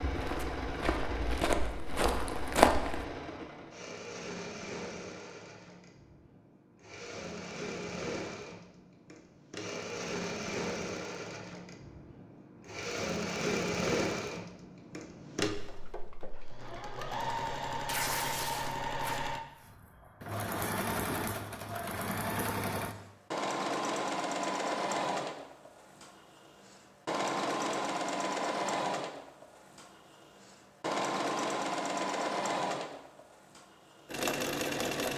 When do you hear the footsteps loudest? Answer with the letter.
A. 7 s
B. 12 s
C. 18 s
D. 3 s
D.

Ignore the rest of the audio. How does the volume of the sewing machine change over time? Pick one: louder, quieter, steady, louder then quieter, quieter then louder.
louder.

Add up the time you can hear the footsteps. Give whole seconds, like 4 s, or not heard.
3 s.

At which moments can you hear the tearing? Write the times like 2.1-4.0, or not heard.
17.9-19.2.